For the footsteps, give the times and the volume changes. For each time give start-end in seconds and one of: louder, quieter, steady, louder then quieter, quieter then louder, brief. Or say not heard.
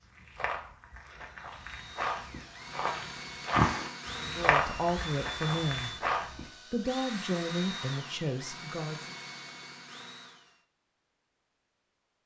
0.0-6.5 louder then quieter.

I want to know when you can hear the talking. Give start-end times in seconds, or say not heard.
4.2-6.0, 6.7-9.2.